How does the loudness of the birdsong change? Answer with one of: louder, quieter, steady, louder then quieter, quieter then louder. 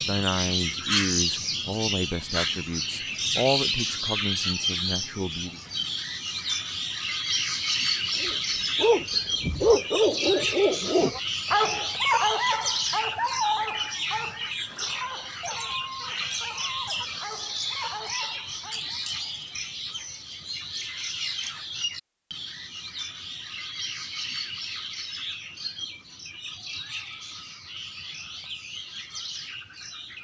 quieter.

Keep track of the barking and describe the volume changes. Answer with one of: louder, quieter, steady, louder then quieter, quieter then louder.
quieter.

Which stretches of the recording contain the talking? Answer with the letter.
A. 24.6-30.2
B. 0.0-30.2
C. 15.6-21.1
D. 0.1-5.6
D.